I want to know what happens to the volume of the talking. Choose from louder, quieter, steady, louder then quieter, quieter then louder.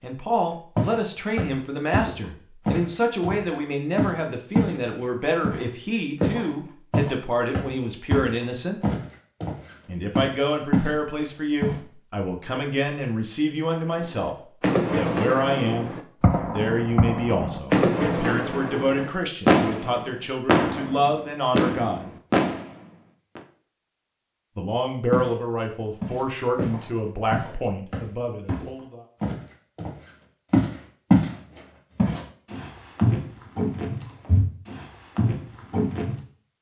steady.